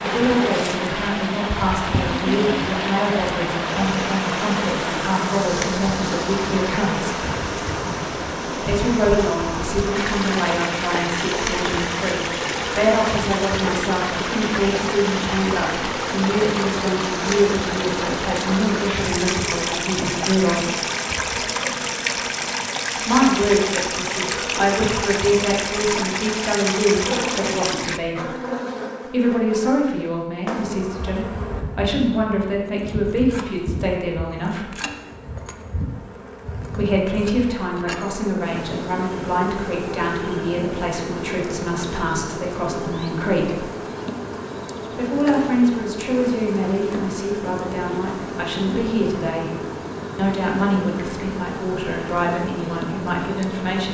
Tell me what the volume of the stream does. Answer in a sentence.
The loudness of the stream stays about the same.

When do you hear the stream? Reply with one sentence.
You can hear the stream from 0.0 to 28.0 s.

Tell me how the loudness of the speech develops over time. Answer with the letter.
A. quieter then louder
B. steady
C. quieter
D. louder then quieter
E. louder
B.